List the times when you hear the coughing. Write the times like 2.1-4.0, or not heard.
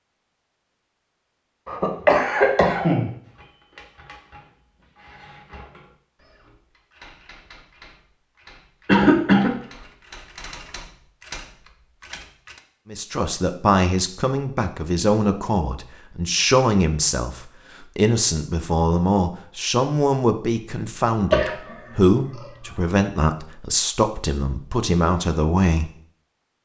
1.6-3.1, 8.8-9.6, 21.3-22.5.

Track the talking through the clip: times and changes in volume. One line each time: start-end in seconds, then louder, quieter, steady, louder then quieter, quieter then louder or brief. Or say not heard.
12.9-25.9 steady.